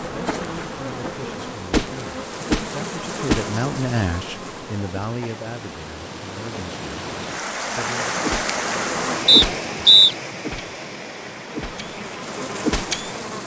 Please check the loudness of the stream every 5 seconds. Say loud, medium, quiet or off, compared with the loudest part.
medium, loud, medium.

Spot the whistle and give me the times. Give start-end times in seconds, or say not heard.
9.2-10.2.